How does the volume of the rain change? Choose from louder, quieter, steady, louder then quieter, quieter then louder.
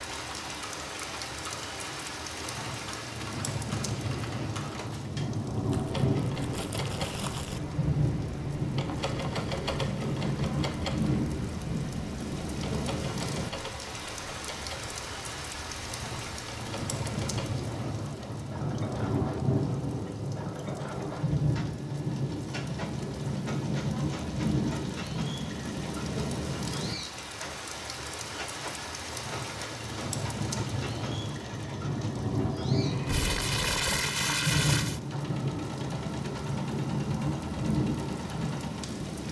steady.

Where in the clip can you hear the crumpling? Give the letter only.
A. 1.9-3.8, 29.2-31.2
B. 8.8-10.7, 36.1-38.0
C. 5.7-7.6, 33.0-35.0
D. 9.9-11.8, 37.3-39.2
C.